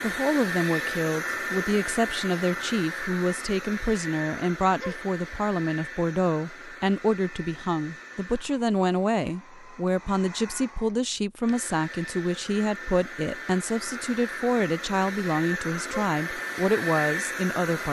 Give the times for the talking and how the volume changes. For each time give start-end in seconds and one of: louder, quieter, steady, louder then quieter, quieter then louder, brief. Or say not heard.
0.0-17.8 steady.